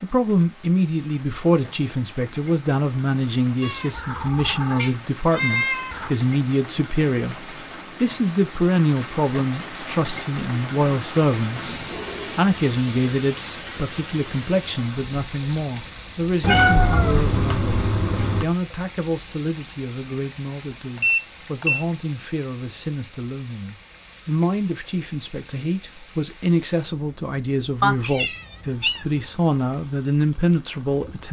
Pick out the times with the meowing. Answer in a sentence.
You can hear the meowing from 3.6 to 6.1 s, from 16.4 to 18.4 s and from 27.8 to 29.1 s.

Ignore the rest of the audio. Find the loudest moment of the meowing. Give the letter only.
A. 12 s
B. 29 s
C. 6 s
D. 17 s
D.